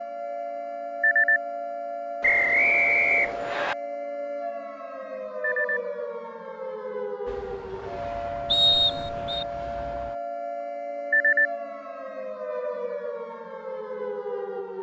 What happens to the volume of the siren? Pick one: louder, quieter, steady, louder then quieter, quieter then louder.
steady.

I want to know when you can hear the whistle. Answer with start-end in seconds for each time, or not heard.
2.2-3.8, 8.5-9.4.